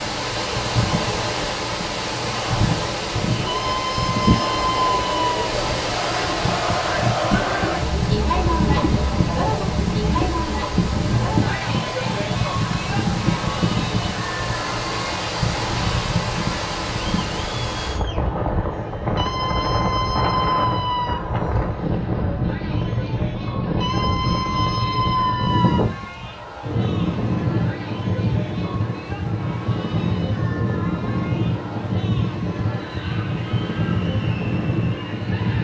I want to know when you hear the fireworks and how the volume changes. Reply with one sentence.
The fireworks can't be heard in this clip.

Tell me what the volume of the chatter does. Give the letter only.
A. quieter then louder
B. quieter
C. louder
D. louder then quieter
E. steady
B.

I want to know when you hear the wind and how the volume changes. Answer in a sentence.
The wind can be heard from 0.0 to 35.5 s, at a steady volume.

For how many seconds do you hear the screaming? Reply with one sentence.
The screaming can be heard for 6 seconds in total.